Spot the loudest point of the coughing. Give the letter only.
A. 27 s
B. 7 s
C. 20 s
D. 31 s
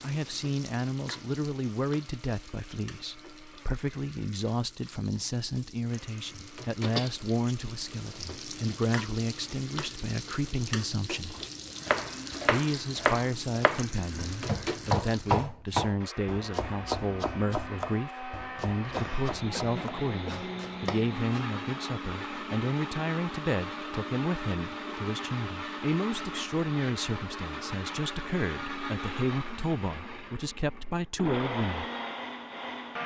B.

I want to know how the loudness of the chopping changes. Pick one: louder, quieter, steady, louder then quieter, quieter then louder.
quieter.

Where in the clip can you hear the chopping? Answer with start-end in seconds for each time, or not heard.
11.3-21.5.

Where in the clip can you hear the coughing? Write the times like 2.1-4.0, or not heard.
6.8-7.5, 18.9-20.5.